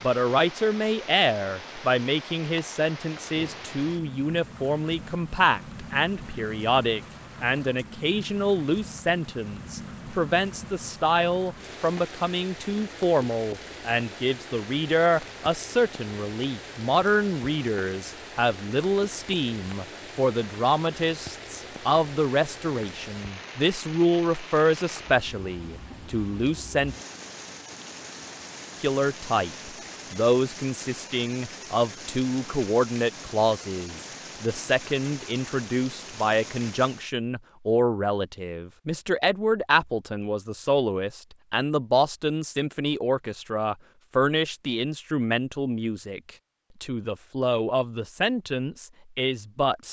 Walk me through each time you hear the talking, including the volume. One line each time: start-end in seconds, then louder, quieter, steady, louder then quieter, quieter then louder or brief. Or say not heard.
0.0-26.9 steady
28.8-49.8 steady.